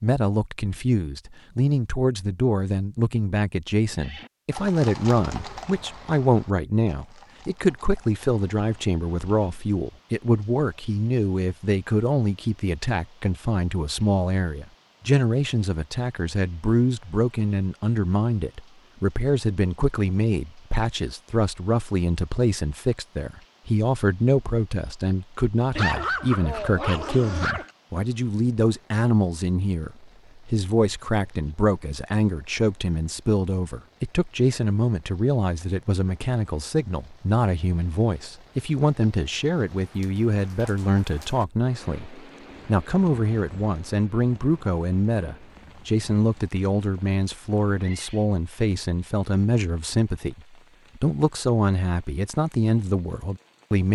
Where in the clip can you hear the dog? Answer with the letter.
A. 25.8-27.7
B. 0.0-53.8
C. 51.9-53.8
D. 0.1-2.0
A.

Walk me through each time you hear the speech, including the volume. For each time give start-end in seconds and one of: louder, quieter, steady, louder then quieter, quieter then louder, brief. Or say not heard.
0.0-53.8 steady.